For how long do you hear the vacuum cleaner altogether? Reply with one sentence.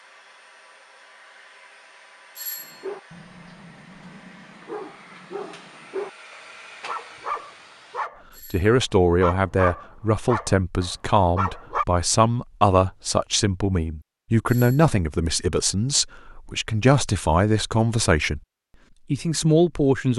The vacuum cleaner can be heard for 8 seconds in total.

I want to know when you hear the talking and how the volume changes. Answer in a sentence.
You can hear the talking from 8.5 to 18.4 s, at a steady volume; and briefly from 19.1 to 20.1 s.